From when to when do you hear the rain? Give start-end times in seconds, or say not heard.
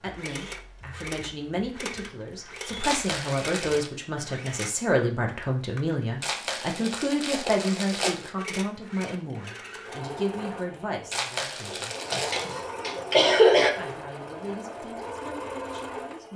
not heard.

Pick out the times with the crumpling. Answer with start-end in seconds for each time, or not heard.
2.8-3.9, 6.2-8.3, 11.1-12.6.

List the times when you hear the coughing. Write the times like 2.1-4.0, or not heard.
11.7-13.7.